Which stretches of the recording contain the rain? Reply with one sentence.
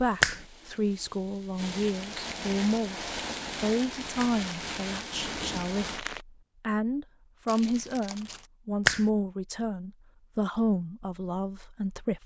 You can hear the rain from 0.0 to 6.2 s.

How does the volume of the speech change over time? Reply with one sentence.
The volume of the speech stays about the same.